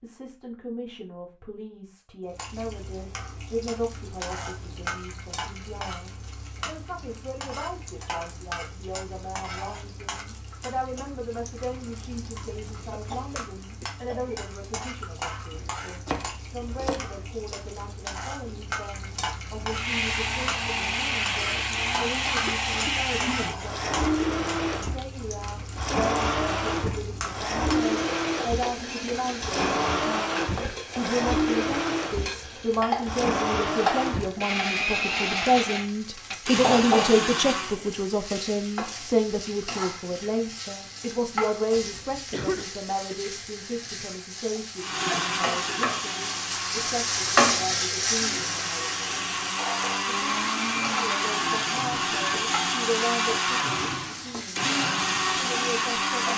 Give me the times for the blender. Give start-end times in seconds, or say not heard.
19.7-37.8, 44.8-56.3.